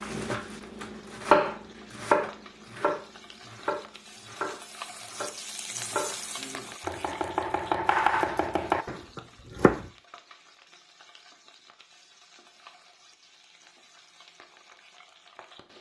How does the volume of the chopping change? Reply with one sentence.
The volume of the chopping goes down, then up.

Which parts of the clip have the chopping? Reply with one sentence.
The chopping can be heard from 0.0 to 9.8 s.